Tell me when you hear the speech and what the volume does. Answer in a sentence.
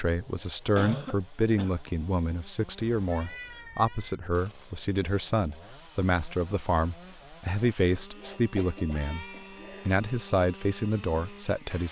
You can hear the speech from 0.0 to 9.2 s, at a steady volume; and briefly from 9.8 to 11.8 s.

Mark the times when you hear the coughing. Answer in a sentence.
The coughing can be heard from 0.8 to 1.8 s and from 8.2 to 9.9 s.